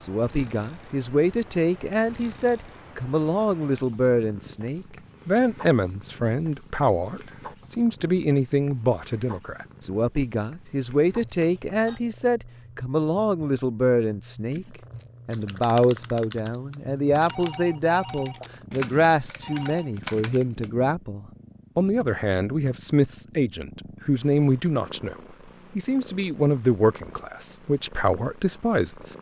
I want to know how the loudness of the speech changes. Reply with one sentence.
The loudness of the speech stays about the same.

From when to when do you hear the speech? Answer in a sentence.
The speech can be heard from 0.0 to 25.1 s and from 25.8 to 29.1 s.